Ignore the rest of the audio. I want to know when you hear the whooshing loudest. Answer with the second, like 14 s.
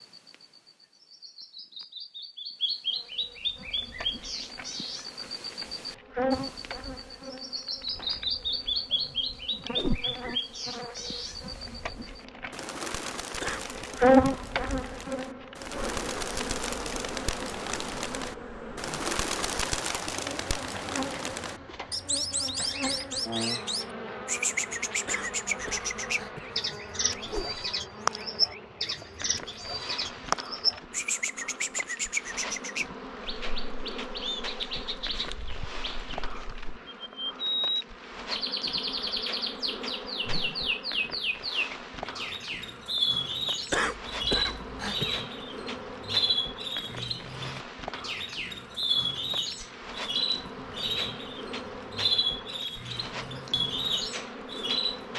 10 s.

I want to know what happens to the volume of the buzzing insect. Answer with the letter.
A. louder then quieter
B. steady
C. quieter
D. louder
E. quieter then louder
A.